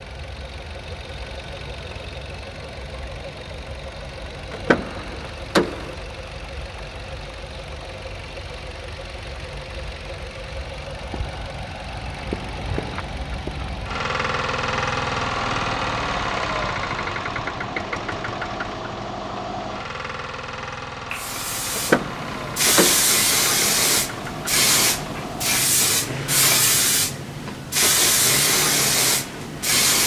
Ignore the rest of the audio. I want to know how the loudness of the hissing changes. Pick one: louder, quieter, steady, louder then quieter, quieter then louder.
steady.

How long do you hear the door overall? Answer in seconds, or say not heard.
3 s.